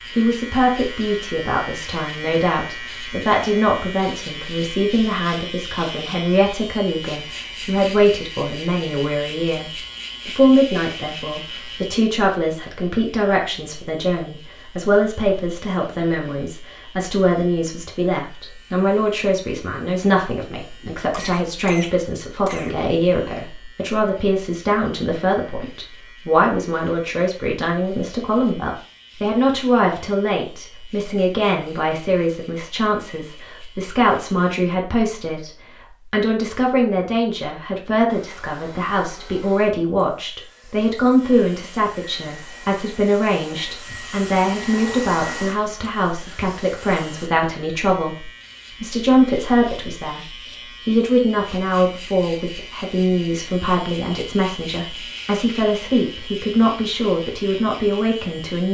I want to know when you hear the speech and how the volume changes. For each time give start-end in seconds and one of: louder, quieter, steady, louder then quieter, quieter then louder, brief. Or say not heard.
0.1-58.6 steady.